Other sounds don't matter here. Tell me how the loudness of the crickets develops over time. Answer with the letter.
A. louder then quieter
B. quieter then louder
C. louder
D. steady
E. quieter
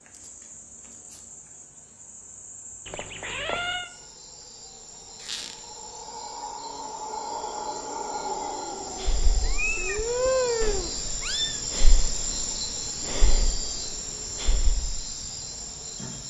C.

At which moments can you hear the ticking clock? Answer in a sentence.
You can't hear the ticking clock here.